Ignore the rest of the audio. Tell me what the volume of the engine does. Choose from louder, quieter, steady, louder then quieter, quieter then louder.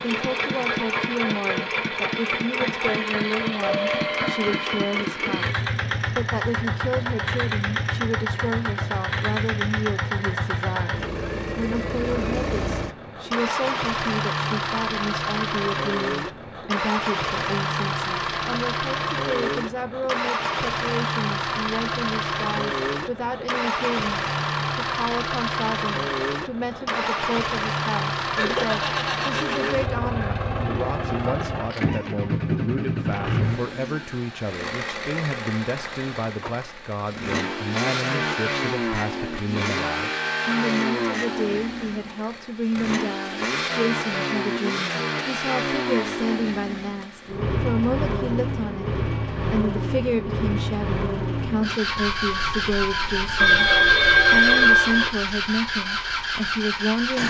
steady.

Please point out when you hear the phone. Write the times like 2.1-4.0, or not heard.
3.6-5.0, 28.4-29.6, 53.4-55.1.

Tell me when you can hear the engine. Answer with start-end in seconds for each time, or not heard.
0.0-57.2.